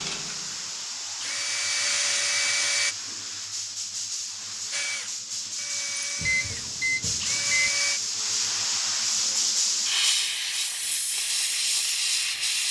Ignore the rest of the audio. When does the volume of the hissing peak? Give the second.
10 s.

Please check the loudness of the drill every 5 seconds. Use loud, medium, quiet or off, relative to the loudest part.
loud, loud, off.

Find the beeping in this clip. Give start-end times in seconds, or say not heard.
6.2-7.7.